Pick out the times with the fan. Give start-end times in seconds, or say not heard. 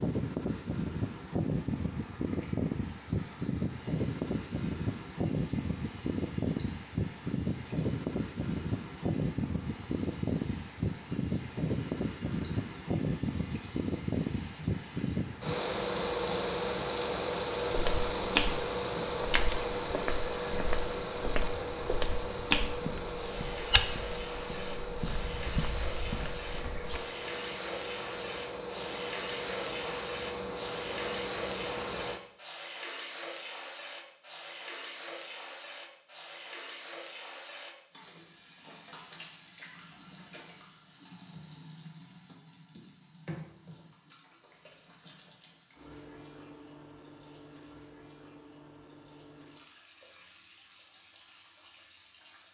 0.0-32.2.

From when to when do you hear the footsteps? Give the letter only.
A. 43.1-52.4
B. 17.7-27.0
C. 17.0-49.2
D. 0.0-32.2
B.